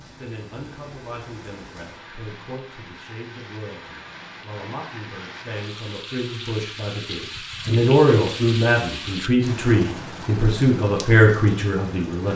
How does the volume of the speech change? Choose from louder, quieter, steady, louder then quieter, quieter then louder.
louder.